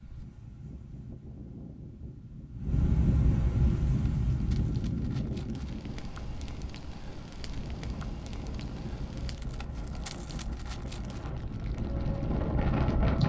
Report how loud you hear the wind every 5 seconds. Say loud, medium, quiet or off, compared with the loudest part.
loud, medium, loud.